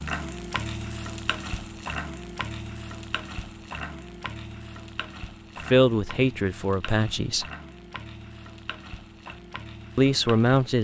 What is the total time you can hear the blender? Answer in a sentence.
The blender can't be heard in this clip.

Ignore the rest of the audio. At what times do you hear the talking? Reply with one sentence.
The talking can be heard from 5.7 to 7.5 s and from 9.9 to 10.8 s.